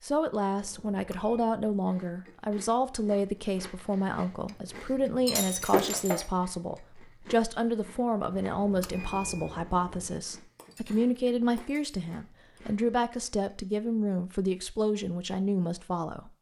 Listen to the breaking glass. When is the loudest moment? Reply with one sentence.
The loudest moment of the breaking glass is at 6 seconds.